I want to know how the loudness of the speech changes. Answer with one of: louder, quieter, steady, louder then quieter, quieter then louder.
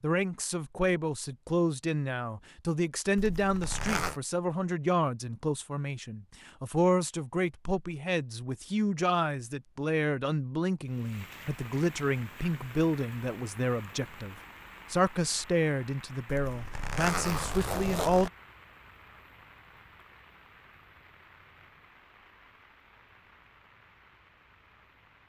steady.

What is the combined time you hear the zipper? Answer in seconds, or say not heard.
3 s.